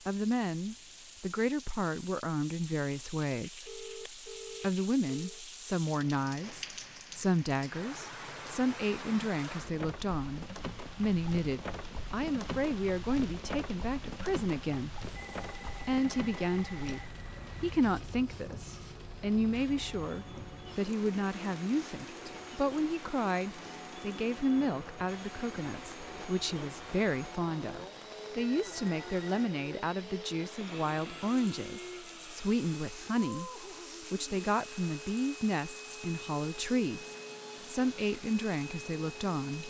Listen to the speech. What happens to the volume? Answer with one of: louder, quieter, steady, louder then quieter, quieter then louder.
steady.